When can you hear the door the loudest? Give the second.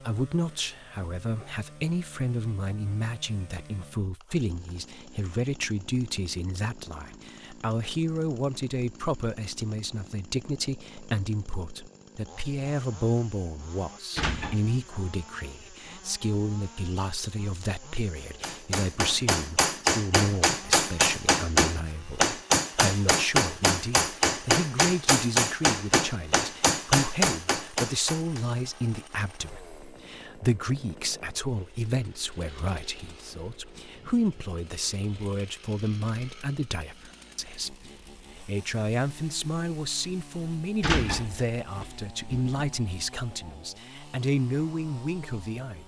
41 s.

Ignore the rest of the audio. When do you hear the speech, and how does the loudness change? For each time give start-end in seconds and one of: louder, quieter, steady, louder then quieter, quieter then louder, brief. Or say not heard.
0.0-45.8 steady.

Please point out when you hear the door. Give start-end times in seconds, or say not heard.
14.2-14.7, 40.8-42.6.